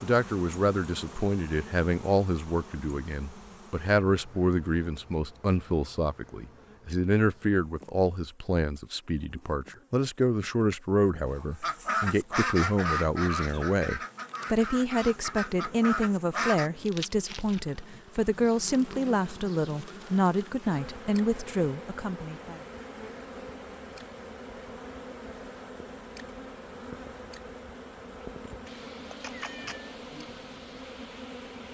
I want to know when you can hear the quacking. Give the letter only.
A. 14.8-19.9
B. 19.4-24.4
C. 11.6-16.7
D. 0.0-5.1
C.